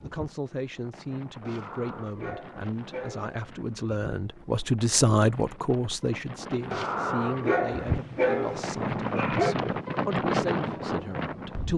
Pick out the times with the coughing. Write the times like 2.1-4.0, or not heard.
not heard.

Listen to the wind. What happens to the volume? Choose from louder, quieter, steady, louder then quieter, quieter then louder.
louder.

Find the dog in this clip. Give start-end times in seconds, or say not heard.
1.4-3.7, 6.7-9.6.